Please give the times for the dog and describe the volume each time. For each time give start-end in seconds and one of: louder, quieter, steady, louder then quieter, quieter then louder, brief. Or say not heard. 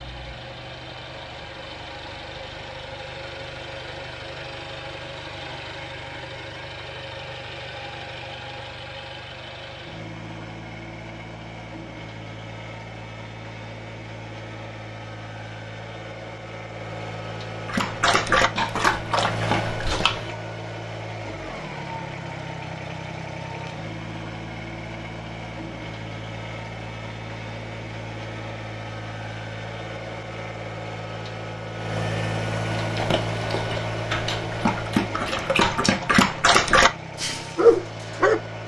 17.6-20.4 brief
32.8-38.4 louder.